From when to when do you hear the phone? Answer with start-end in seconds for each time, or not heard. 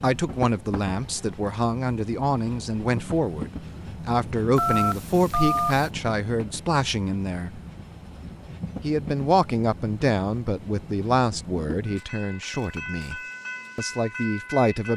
4.5-5.9.